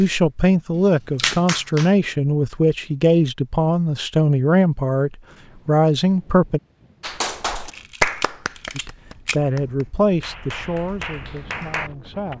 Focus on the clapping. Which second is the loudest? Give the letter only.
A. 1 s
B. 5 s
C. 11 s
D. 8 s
D.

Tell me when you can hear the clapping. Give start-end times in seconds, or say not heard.
0.0-1.9, 7.0-12.3.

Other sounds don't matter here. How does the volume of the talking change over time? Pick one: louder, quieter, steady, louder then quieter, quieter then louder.
quieter.